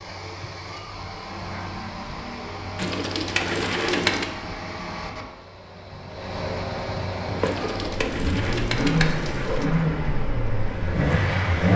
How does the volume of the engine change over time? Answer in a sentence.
The volume of the engine goes up.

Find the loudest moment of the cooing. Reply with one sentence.
The volume of the cooing peaks at 4 seconds.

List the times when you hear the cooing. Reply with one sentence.
You can hear the cooing from 2.8 to 4.3 s and from 7.4 to 9.7 s.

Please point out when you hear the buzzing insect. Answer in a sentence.
The buzzing insect can be heard from 7.2 to 11.7 s.